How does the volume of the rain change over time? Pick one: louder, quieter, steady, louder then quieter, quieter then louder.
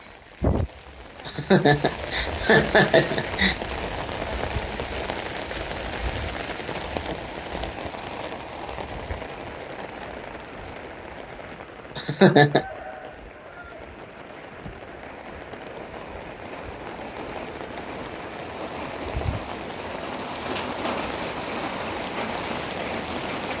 quieter then louder.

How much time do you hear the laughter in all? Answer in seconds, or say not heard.
3 s.